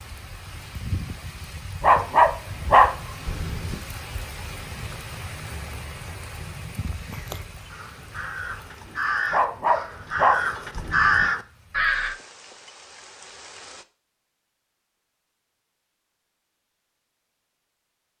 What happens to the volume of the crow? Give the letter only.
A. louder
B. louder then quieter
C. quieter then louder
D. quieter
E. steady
A.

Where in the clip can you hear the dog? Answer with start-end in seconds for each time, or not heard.
1.8-3.8, 9.3-11.2.